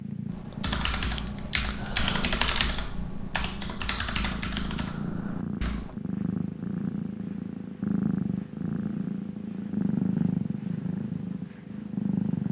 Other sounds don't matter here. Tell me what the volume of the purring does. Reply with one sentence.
The volume of the purring goes up.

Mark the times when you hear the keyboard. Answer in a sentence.
You can hear the keyboard from 0.3 to 6.0 s.